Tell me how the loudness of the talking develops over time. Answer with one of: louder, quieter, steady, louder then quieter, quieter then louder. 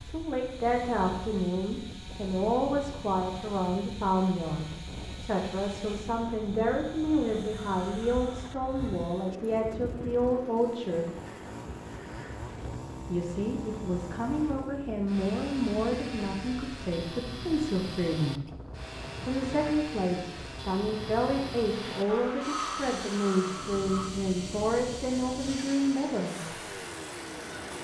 steady.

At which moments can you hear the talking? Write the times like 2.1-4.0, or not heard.
0.0-11.2, 13.1-18.6, 19.2-26.6.